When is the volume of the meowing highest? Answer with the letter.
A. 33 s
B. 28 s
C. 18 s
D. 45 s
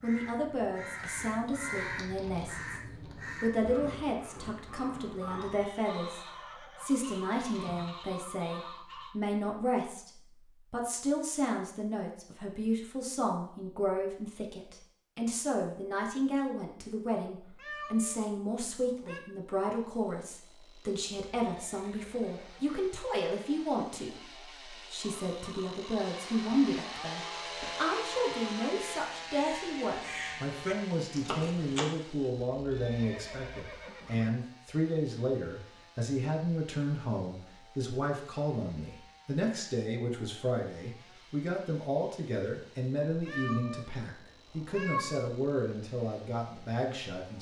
D.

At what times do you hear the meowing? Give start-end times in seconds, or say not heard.
17.4-19.2, 43.1-43.9, 44.6-45.2.